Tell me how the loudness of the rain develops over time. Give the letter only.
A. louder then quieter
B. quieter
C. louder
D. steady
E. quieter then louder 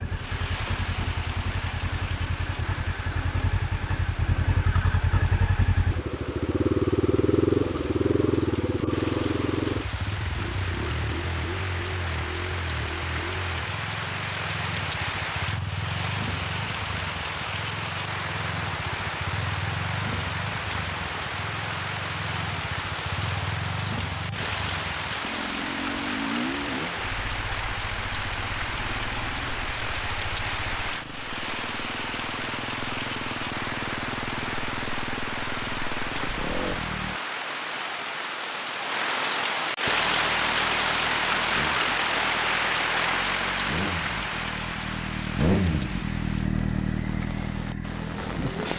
C.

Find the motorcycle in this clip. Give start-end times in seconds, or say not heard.
0.0-37.2, 39.9-48.7.